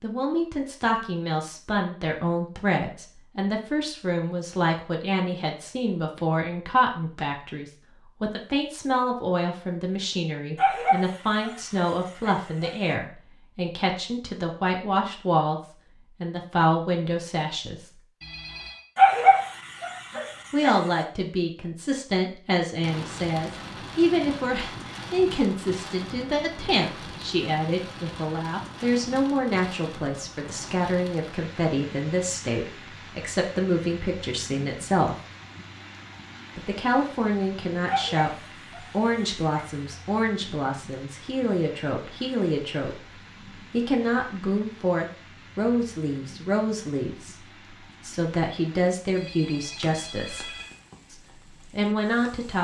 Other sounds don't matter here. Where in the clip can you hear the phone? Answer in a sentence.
The phone can be heard from 18.2 to 18.9 s and from 49.1 to 50.7 s.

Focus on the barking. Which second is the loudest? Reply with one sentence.
The volume of the barking peaks at 19 seconds.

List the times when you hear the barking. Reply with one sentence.
You can hear the barking from 10.6 to 12.9 s, from 18.9 to 21.1 s and from 37.9 to 39.6 s.